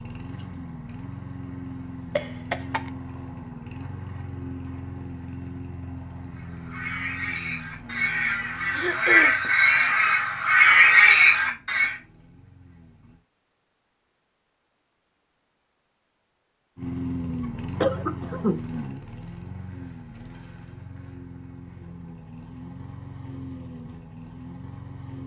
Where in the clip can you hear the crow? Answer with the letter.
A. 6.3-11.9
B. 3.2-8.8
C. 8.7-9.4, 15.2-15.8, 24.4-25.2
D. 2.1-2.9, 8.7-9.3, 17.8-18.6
A.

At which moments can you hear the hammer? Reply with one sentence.
The hammer can't be heard in this clip.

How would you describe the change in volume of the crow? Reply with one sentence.
The loudness of the crow goes up.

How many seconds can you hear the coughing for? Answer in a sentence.
You can hear the coughing for 2 seconds altogether.